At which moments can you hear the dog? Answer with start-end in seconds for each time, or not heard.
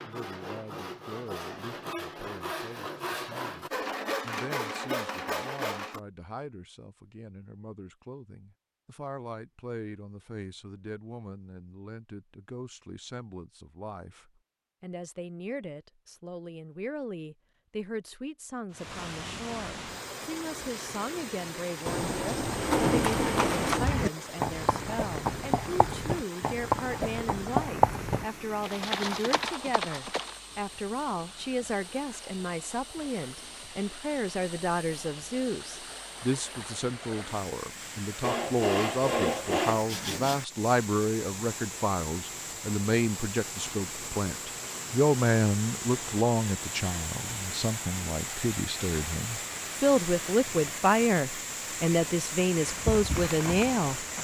not heard.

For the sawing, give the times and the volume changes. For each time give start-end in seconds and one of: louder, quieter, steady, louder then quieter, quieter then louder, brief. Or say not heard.
0.0-6.0 louder
38.2-40.4 brief.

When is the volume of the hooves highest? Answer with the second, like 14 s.
28 s.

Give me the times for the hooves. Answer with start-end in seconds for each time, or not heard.
22.4-30.4, 52.5-54.1.